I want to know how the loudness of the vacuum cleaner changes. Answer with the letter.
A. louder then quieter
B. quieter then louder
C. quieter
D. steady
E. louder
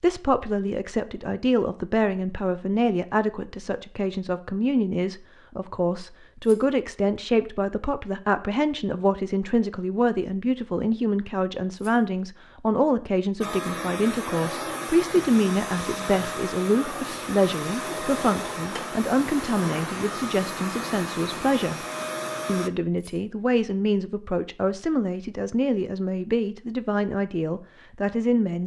D.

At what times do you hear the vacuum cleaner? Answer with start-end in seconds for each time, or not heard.
13.4-22.7.